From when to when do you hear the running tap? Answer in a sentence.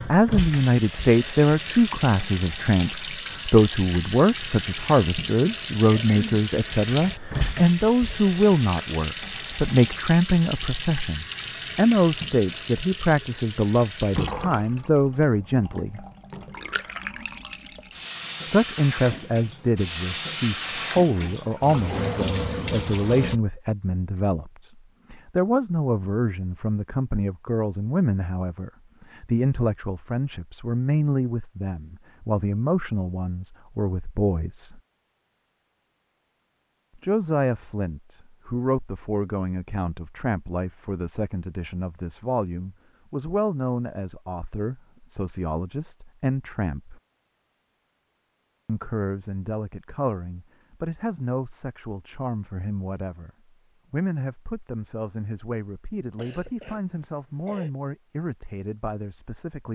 You can hear the running tap from 0.0 to 23.4 s.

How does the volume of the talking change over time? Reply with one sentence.
The loudness of the talking goes down.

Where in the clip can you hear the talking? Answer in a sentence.
The talking can be heard from 0.1 to 16.0 s, from 18.4 to 34.8 s, from 37.0 to 47.0 s, from 48.6 to 53.3 s and from 53.9 to 59.7 s.